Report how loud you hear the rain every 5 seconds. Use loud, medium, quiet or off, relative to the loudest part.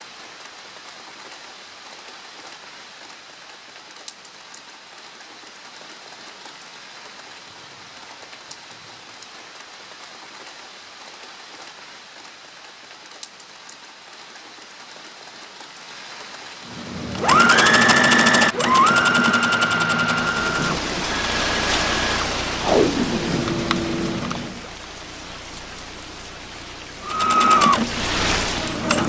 quiet, quiet, quiet, medium, loud, loud.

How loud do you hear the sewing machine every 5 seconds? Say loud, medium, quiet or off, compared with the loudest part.
off, off, off, loud, medium, loud.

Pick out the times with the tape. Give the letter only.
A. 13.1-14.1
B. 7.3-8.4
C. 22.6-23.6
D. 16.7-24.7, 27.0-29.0
C.